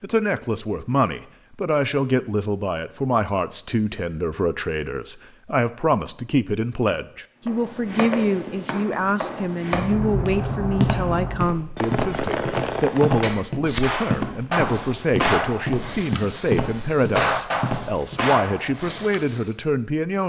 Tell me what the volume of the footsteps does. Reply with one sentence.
The volume of the footsteps stays about the same.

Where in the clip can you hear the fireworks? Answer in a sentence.
The fireworks can be heard from 9.7 to 19.6 s.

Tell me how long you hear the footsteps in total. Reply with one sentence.
You can hear the footsteps for 11 seconds altogether.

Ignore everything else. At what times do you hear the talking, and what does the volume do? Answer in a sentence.
You can hear the talking from 0.0 to 20.2 s, at a steady volume.